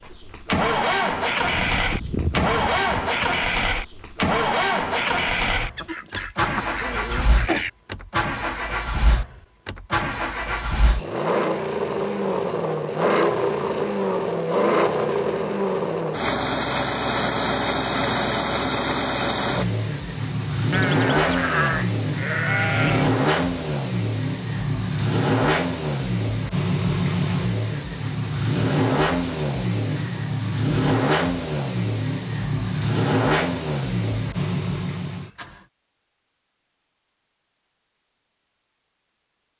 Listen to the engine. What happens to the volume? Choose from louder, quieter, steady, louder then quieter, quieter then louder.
steady.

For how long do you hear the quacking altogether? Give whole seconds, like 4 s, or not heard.
2 s.